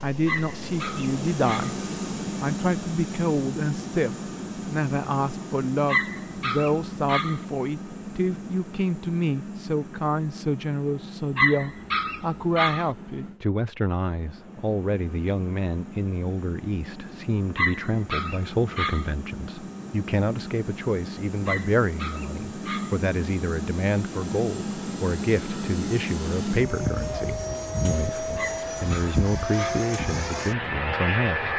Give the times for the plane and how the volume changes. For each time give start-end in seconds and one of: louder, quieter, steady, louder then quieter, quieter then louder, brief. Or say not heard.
0.0-31.5 quieter then louder.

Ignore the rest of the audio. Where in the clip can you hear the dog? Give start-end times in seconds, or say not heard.
0.2-1.8, 5.8-7.4, 11.3-12.9, 17.6-19.1, 21.4-22.9, 28.4-29.9.